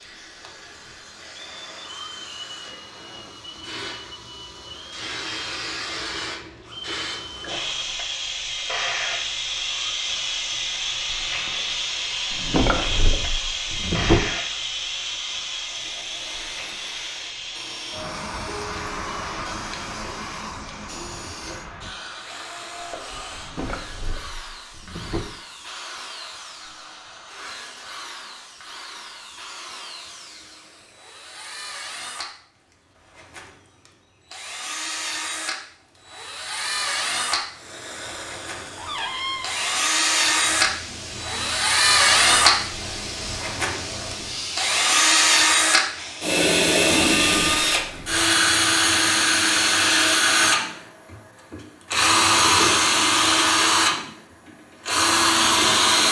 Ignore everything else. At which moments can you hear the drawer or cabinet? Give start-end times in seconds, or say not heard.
12.3-14.2, 23.4-25.2, 38.8-39.9.